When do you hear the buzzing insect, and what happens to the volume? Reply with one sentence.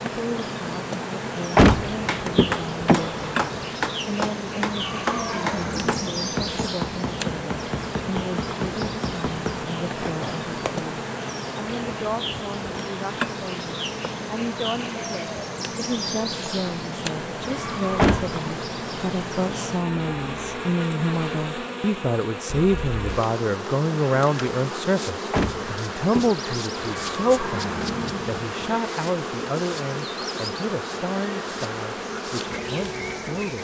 You can hear the buzzing insect from 0.0 to 33.5 s, at a steady volume.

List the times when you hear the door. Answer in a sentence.
The door can be heard from 1.6 to 3.6 s, from 17.9 to 18.4 s and from 25.3 to 26.4 s.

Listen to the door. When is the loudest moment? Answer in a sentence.
The volume of the door peaks at 2 seconds.